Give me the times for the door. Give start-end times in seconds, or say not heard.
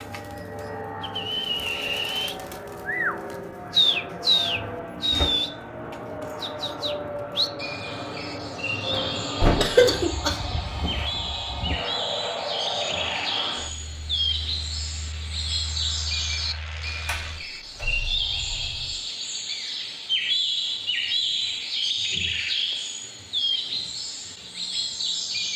4.1-5.3, 8.9-9.8, 17.1-18.9.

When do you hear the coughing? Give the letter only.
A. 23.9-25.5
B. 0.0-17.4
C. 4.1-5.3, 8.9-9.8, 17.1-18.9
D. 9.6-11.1
D.